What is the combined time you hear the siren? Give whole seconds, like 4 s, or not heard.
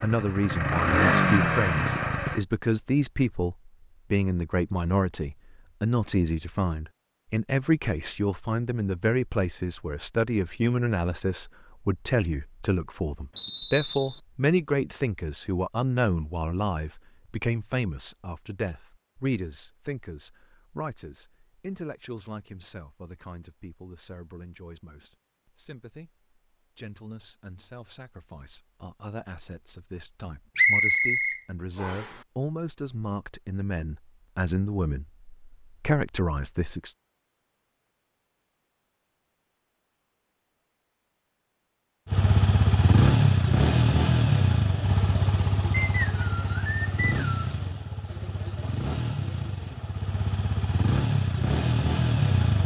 not heard.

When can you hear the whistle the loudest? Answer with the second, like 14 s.
31 s.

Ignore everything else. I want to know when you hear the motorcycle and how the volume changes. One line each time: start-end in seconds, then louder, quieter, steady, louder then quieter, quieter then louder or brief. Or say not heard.
0.0-2.4 brief
42.0-52.6 quieter then louder.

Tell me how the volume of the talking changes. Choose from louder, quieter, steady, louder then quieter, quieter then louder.
quieter then louder.